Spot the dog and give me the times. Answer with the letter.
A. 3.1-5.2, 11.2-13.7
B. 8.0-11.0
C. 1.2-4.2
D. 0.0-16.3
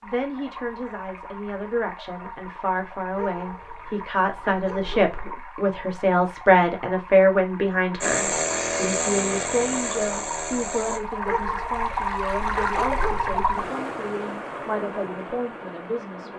A.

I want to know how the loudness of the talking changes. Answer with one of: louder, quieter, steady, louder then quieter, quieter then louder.
louder then quieter.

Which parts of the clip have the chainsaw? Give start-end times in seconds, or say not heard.
8.0-11.0.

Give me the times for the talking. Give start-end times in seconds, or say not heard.
0.0-16.3.